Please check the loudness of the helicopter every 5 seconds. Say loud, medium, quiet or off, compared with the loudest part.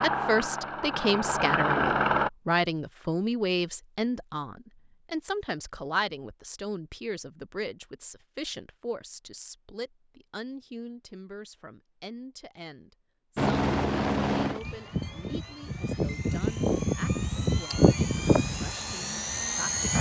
loud, off, loud, loud.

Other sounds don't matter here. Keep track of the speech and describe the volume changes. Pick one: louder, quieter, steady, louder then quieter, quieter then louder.
quieter.